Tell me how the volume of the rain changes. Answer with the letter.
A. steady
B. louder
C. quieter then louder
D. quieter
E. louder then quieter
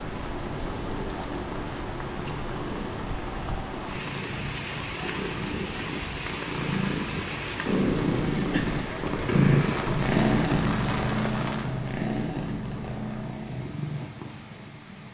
D.